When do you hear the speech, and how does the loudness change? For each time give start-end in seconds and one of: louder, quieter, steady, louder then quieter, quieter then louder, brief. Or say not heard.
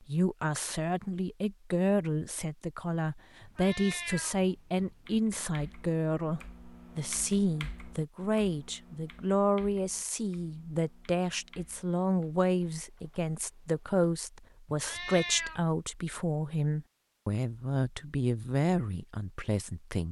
0.1-20.0 steady.